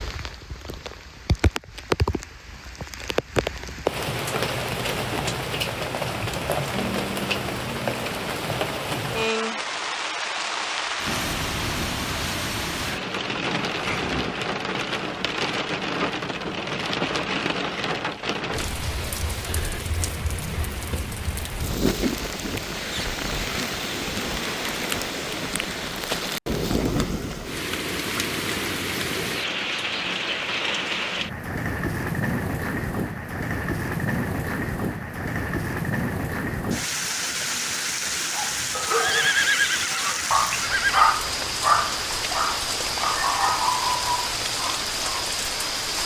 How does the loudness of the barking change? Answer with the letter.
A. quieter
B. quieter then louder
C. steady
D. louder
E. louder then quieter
E.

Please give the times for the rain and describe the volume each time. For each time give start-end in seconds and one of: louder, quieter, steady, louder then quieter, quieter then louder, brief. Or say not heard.
0.0-46.0 steady.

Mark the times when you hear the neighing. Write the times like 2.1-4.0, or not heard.
39.0-41.1.